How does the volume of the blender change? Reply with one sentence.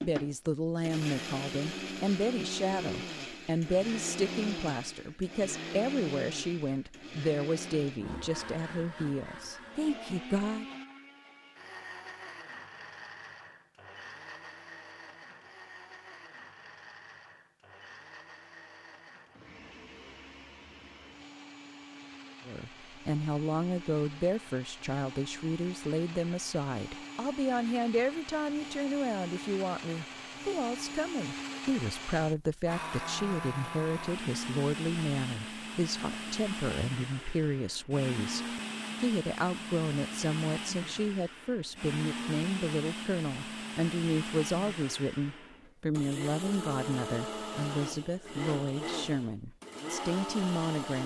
The volume of the blender goes down, then up.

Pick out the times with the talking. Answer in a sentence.
The talking can be heard from 0.0 to 10.7 s and from 22.4 to 51.0 s.